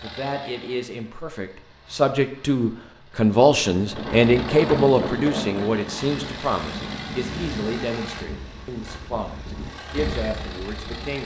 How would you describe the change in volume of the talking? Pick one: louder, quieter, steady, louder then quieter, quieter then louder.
louder then quieter.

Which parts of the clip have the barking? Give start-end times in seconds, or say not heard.
not heard.